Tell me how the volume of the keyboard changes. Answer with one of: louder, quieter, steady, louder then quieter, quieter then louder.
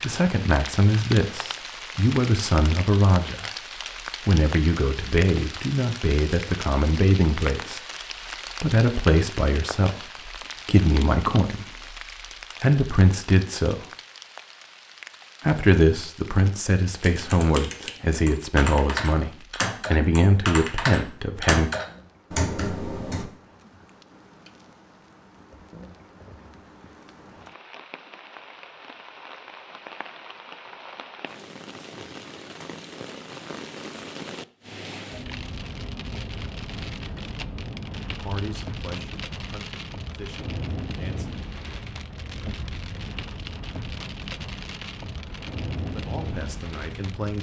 louder.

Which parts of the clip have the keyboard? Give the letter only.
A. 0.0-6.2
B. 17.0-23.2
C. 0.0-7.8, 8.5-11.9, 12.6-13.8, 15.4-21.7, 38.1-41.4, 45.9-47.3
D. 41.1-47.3
B.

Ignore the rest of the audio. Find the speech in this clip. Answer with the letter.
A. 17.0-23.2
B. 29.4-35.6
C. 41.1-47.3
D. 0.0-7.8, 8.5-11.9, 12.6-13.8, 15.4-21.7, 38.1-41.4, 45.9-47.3
D.